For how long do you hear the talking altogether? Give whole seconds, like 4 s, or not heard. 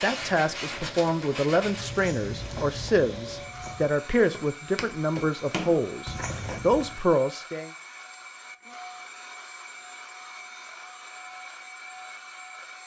8 s.